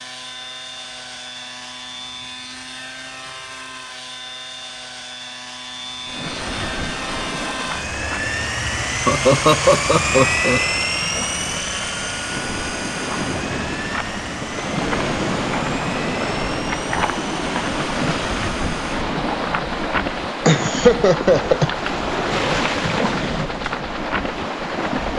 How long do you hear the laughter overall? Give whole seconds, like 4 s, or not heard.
3 s.